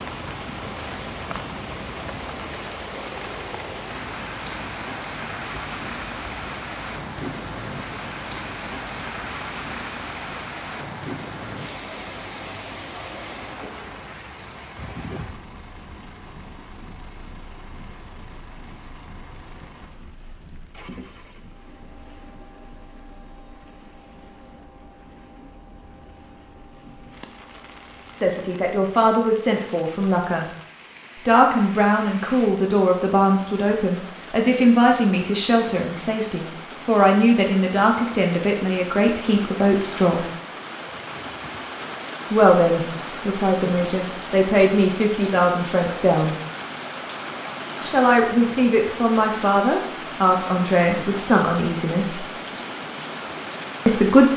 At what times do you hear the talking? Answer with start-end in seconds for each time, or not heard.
28.2-30.4, 31.2-40.2, 42.3-46.4, 47.8-52.2, 53.9-54.3.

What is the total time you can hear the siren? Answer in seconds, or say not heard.
not heard.